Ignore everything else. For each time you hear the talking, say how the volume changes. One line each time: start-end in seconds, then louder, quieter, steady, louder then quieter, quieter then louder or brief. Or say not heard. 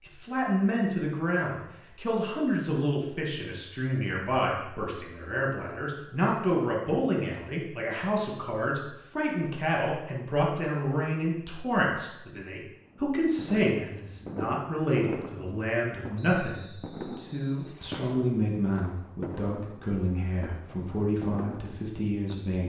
0.1-22.6 steady.